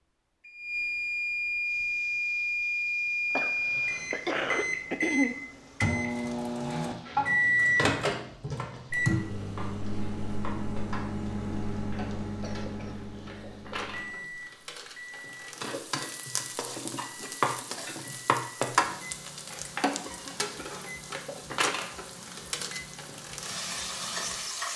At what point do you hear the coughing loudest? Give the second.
5 s.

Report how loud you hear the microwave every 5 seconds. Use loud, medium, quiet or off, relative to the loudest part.
loud, loud, medium, quiet, quiet.